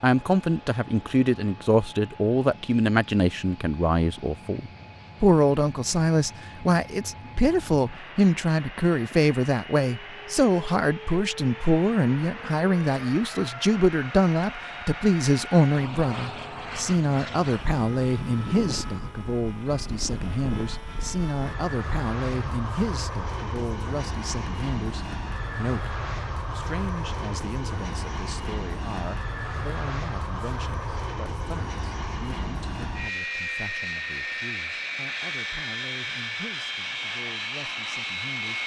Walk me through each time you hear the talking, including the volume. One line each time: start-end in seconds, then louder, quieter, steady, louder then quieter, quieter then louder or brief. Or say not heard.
0.0-38.6 quieter.